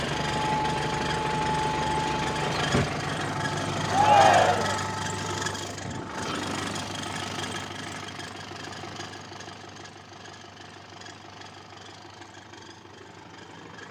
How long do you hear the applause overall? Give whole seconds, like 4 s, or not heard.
not heard.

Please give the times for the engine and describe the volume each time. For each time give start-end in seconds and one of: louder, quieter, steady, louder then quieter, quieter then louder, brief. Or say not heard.
0.0-13.8 quieter.